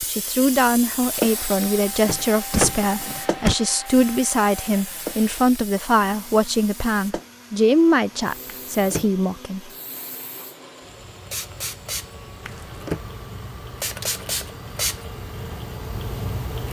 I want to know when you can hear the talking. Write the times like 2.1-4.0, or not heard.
0.1-9.7.